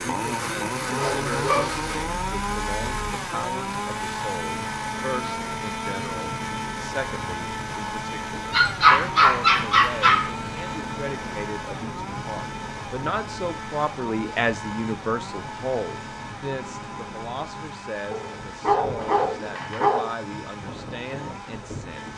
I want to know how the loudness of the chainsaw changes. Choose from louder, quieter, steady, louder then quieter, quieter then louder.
quieter.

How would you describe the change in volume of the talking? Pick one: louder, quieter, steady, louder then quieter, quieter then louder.
louder then quieter.